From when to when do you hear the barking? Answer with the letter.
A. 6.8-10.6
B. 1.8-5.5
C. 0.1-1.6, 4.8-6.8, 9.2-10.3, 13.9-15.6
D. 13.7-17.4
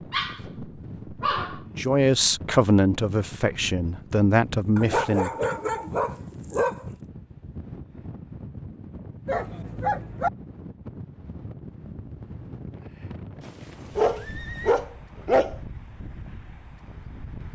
C.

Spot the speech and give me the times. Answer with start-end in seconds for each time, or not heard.
1.8-5.5.